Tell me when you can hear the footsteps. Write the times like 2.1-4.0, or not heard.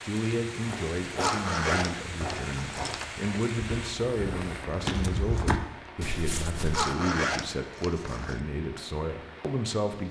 0.6-6.9.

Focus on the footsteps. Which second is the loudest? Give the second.
5 s.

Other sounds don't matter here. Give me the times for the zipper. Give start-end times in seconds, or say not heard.
1.1-3.0, 6.7-8.3.